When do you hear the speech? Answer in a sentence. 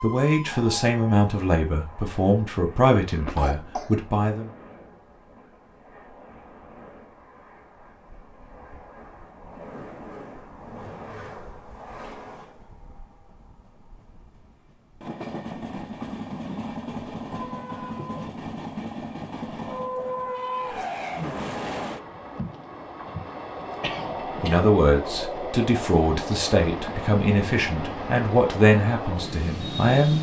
The speech can be heard from 0.0 to 4.5 s and from 24.4 to 30.1 s.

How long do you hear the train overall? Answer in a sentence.
You can hear the train for 30 seconds altogether.